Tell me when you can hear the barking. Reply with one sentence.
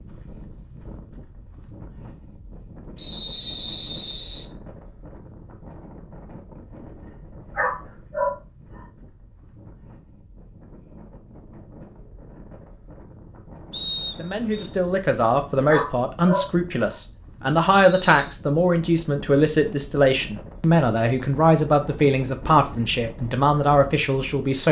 The barking can be heard from 7.5 to 8.3 s and from 15.7 to 16.5 s.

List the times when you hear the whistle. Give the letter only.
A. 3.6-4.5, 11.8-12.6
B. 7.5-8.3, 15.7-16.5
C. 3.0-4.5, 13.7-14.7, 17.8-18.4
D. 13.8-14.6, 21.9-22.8
C.